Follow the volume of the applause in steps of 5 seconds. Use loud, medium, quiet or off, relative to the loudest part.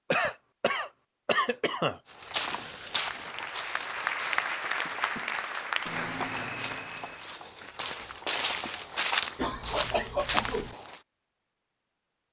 loud, loud, off.